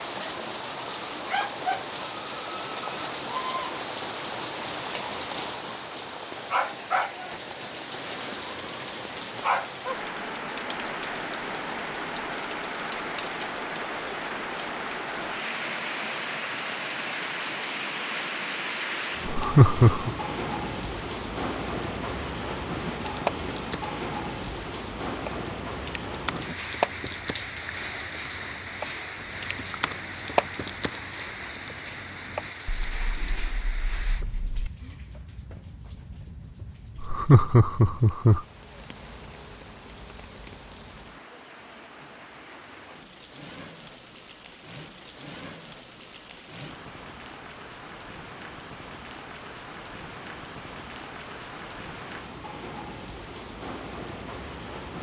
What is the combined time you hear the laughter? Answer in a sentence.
The laughter can be heard for 2 seconds in total.